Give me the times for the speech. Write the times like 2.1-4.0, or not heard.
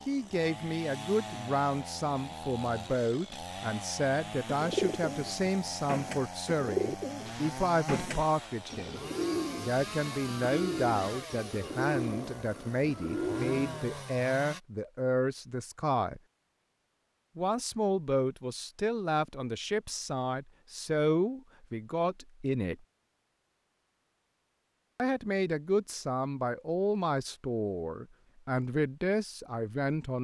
0.1-9.0, 9.6-16.2, 17.4-22.8, 24.9-30.1.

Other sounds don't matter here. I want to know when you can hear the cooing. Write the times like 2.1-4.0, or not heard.
4.5-13.8.